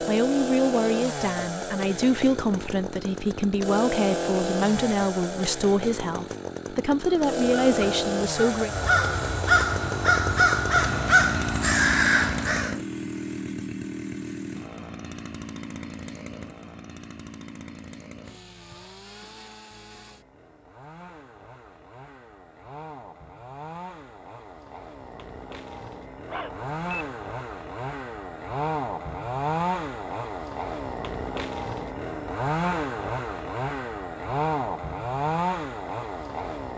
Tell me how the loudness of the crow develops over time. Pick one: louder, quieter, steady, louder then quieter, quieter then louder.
louder.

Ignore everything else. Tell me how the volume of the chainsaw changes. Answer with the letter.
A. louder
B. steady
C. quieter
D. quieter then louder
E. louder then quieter
D.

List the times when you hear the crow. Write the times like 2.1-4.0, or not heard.
7.0-12.8.